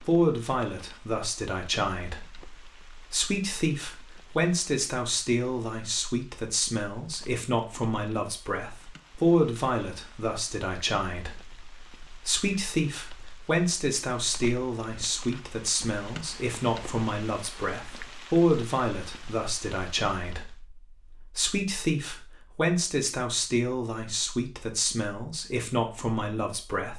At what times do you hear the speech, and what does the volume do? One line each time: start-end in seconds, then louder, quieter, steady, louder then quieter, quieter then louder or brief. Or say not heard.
0.0-26.9 steady.